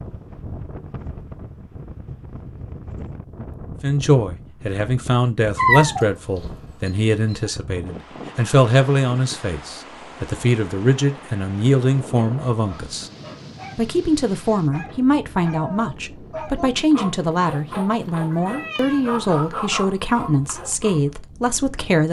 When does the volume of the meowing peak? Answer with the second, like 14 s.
6 s.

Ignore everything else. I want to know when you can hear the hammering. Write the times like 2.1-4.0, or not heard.
not heard.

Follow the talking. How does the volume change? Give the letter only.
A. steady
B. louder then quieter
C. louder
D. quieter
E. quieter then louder
A.